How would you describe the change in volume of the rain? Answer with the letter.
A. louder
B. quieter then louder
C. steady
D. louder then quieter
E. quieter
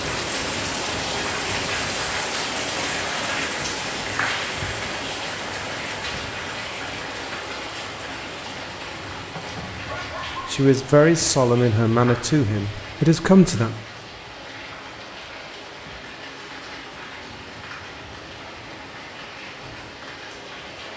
E.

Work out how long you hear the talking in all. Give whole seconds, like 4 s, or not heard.
3 s.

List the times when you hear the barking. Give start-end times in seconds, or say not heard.
9.3-10.6.